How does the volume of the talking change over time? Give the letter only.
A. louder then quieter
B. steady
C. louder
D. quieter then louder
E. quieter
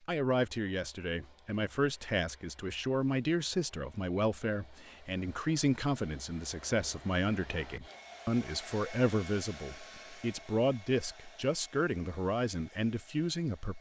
B.